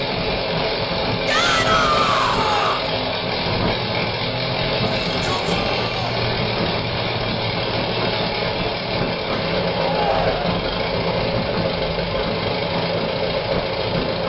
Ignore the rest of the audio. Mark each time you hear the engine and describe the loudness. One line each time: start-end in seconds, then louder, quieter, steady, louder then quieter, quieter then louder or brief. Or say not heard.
0.0-14.2 steady.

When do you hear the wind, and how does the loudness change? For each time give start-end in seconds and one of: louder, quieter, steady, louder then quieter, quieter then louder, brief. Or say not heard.
0.0-14.2 steady.